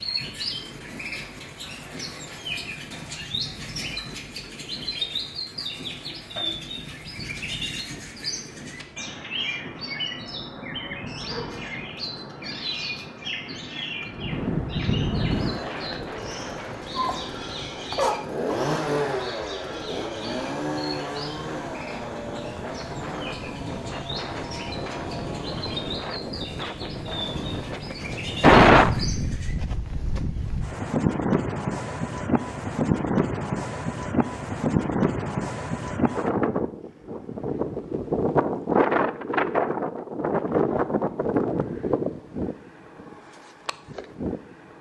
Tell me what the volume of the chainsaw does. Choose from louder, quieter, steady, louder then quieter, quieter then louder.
louder then quieter.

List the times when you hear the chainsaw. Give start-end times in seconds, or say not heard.
15.1-27.9.